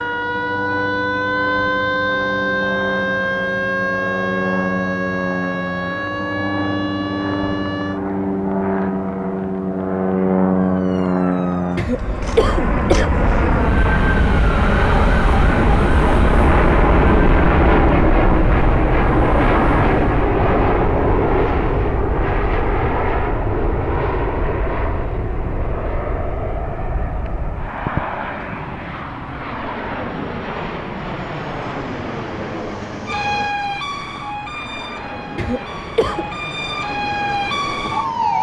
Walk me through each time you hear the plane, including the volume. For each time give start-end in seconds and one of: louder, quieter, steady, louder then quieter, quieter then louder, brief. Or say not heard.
0.0-38.3 louder then quieter.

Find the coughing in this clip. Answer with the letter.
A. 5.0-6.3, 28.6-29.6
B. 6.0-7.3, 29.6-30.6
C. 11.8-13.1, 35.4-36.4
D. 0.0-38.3
C.